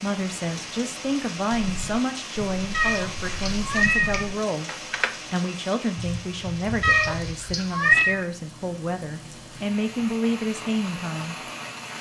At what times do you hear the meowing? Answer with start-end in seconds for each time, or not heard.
2.7-4.2, 6.8-8.2.